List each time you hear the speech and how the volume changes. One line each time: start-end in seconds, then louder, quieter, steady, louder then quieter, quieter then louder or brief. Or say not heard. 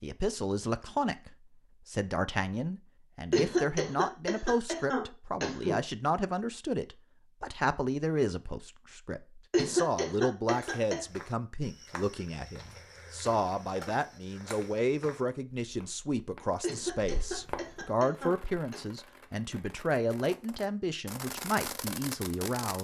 0.0-22.7 steady.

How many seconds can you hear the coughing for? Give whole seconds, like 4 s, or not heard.
6 s.